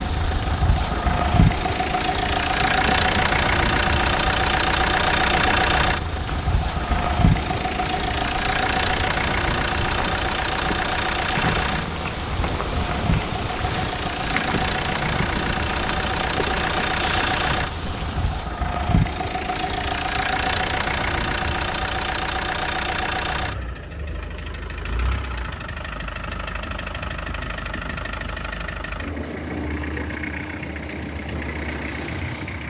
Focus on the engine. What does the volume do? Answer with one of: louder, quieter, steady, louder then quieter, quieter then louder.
quieter.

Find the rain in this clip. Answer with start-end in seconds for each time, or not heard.
0.0-18.5.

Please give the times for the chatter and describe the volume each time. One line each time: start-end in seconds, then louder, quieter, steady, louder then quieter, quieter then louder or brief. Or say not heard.
not heard.